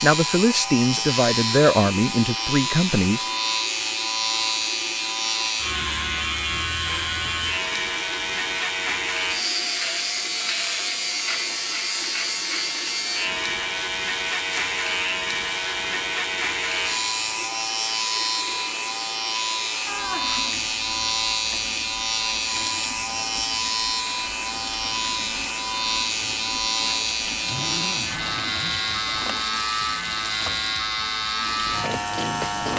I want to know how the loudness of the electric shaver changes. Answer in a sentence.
The loudness of the electric shaver stays about the same.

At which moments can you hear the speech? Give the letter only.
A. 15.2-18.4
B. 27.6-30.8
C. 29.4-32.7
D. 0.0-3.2
D.